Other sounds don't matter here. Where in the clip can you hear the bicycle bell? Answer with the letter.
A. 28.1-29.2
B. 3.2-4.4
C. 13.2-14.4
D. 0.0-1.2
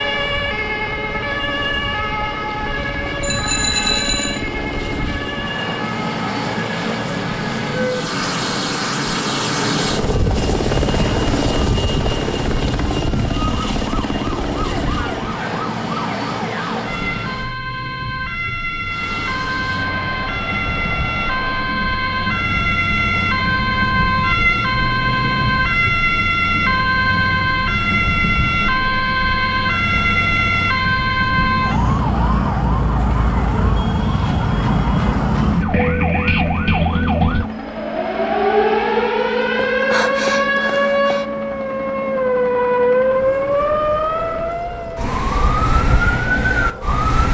B.